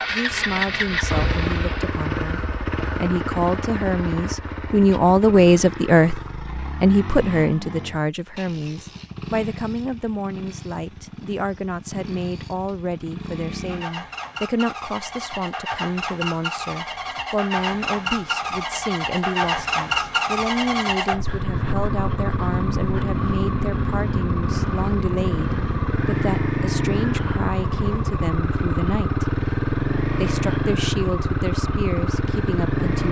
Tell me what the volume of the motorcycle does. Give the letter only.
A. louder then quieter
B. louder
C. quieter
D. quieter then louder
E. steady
D.